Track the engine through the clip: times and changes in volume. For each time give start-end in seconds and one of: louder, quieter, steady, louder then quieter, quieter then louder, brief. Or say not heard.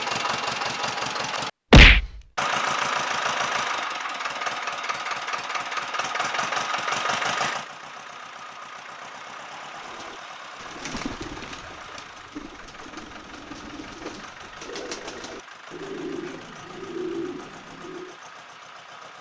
0.0-19.1 quieter.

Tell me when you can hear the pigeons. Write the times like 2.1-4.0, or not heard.
9.8-18.1.